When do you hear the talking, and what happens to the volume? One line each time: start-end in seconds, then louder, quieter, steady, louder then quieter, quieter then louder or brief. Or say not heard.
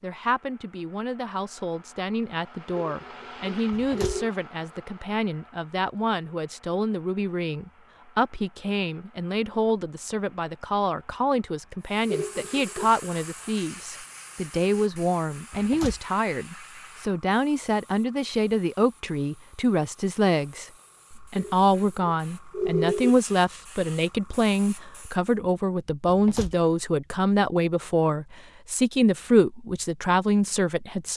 0.0-31.1 louder.